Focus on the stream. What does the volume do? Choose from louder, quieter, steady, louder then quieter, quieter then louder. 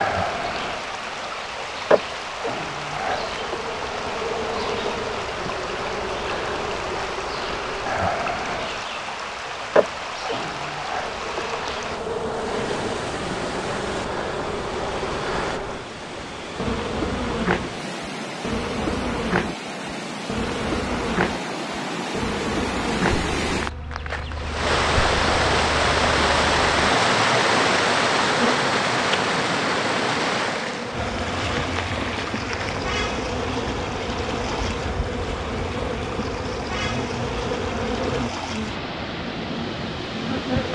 louder then quieter.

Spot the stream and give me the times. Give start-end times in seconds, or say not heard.
0.0-40.6.